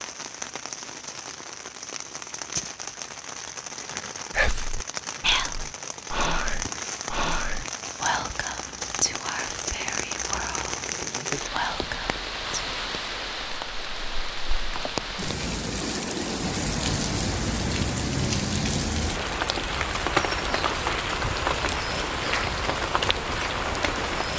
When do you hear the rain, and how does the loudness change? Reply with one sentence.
You can hear the rain from 0.0 to 24.3 s, getting louder.